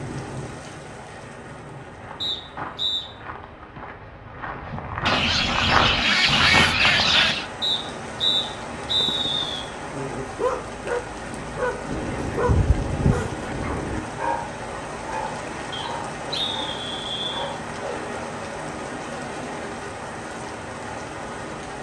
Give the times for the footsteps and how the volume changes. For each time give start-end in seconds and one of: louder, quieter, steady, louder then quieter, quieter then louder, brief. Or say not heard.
1.9-7.4 louder.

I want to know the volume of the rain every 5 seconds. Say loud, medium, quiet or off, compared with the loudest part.
medium, loud, loud, loud, loud.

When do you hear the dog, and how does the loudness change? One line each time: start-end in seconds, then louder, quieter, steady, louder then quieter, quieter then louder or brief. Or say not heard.
9.0-18.2 quieter.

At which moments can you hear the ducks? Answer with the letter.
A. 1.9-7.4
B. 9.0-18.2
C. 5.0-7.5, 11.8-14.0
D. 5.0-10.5
C.